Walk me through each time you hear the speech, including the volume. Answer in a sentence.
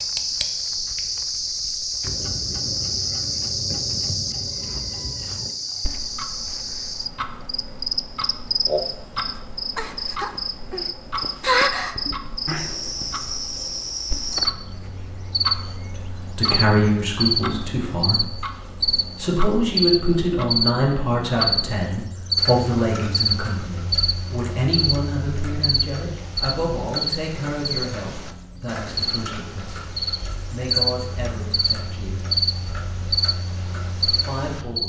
You can hear the speech briefly from 16.3 to 18.2 s; from 19.1 to 32.2 s, getting quieter; and briefly from 34.1 to 34.8 s.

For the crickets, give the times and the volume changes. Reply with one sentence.
You can hear the crickets from 0.0 to 34.8 s, at a steady volume.